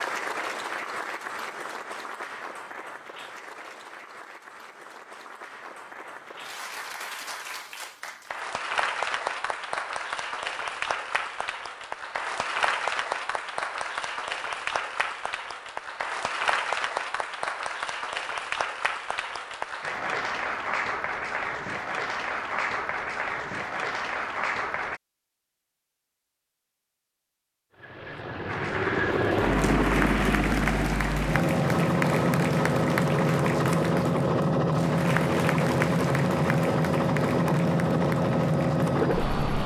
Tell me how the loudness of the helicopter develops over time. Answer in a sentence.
The loudness of the helicopter stays about the same.